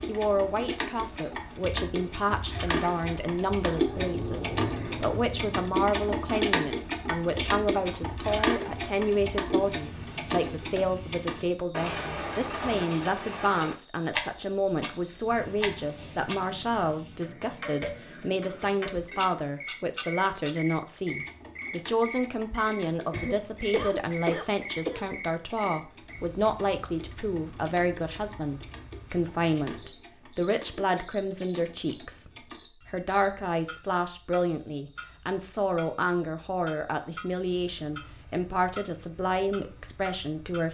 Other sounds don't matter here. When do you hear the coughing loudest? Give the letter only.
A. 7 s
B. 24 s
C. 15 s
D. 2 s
B.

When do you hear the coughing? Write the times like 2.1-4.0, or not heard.
23.1-25.1.